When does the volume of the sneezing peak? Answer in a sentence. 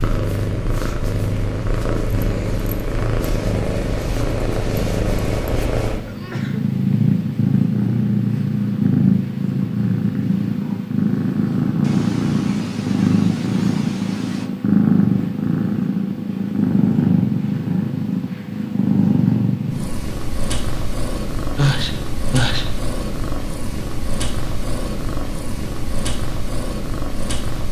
The volume of the sneezing peaks at 22 seconds.